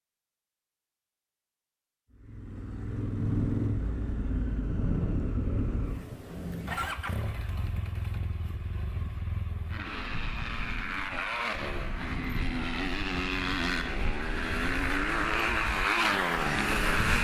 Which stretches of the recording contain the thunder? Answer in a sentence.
The thunder can be heard from 3.0 to 7.2 s.